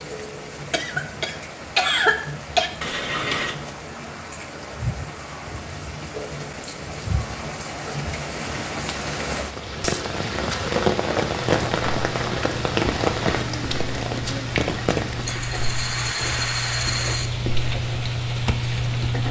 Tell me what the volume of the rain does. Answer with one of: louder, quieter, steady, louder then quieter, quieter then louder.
louder then quieter.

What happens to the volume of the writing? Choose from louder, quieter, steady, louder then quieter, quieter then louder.
louder.